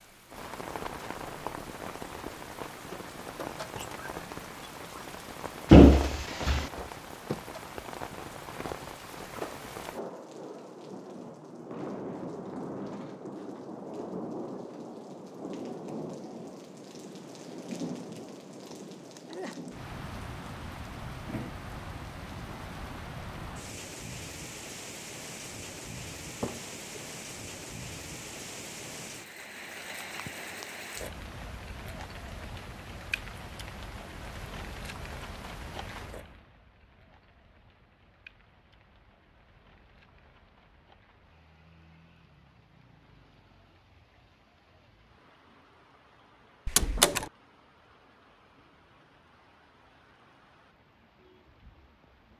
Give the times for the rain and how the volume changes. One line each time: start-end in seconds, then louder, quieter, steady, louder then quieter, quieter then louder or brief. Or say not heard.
0.0-52.3 quieter.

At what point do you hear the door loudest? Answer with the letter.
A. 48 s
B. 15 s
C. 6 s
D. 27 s
C.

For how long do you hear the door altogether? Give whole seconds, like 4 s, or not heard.
2 s.